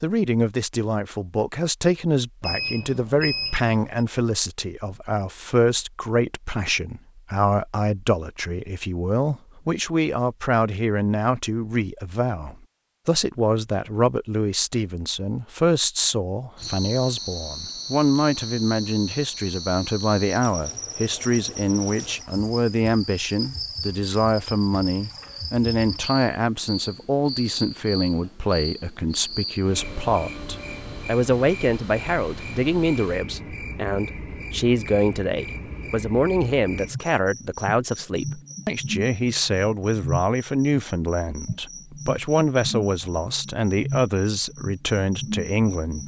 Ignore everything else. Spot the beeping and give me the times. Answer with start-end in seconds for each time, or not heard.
2.4-4.0.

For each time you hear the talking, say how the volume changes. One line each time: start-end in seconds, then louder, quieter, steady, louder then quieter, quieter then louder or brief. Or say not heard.
0.0-46.0 steady.